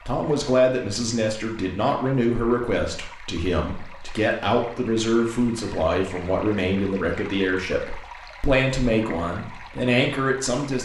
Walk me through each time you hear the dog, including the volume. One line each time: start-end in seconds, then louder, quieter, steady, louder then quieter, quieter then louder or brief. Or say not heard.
not heard.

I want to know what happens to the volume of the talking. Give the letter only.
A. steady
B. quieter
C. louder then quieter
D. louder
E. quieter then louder
A.